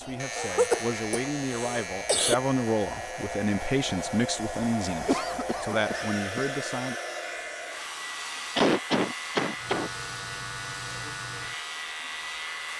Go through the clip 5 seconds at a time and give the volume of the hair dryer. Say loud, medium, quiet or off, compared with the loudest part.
loud, loud, medium.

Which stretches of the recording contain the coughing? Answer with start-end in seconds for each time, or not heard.
0.3-2.4, 5.0-6.5, 8.6-9.9.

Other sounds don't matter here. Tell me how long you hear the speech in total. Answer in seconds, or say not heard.
7 s.